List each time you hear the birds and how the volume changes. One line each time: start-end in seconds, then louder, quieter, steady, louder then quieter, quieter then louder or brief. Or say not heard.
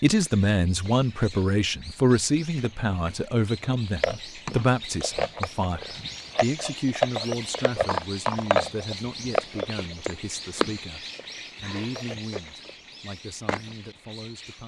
0.0-14.6 louder then quieter.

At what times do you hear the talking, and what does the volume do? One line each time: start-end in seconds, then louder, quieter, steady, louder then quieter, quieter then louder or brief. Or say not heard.
0.0-14.6 quieter.